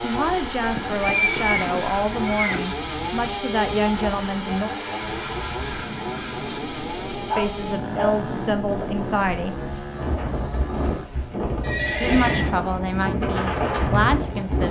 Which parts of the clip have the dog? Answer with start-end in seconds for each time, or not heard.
7.2-8.2.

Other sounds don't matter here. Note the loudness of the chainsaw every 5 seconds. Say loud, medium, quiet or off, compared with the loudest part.
loud, loud, medium.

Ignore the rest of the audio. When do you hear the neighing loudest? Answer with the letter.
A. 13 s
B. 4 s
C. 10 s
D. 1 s
D.